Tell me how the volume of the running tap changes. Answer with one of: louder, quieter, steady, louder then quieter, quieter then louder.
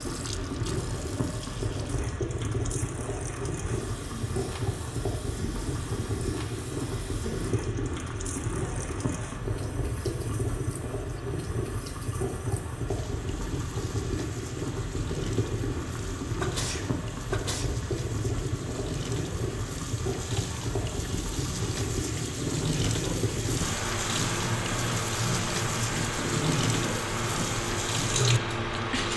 louder.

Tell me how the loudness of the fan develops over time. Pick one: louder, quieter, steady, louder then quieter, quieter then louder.
steady.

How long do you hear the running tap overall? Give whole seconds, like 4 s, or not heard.
29 s.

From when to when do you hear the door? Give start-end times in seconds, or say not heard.
not heard.